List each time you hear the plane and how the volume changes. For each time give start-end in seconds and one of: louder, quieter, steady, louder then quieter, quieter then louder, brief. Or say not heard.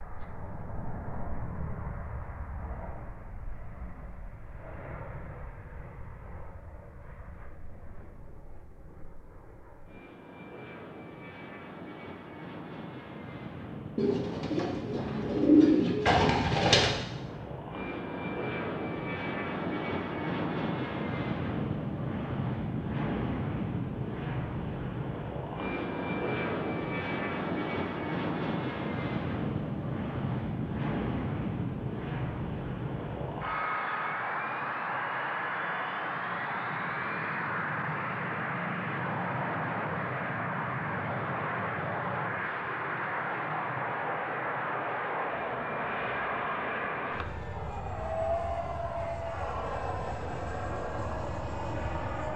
0.0-52.3 louder.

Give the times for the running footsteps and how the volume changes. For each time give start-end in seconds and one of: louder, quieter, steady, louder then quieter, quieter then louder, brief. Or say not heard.
not heard.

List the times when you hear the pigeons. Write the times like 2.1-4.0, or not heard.
13.9-16.9.